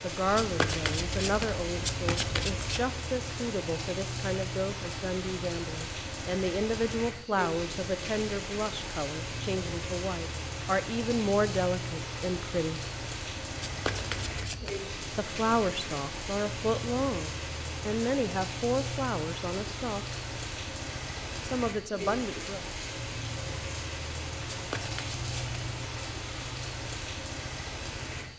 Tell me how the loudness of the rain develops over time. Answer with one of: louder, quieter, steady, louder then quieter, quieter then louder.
steady.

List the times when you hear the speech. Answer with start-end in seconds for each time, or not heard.
0.0-12.8, 15.2-20.1, 21.4-22.6.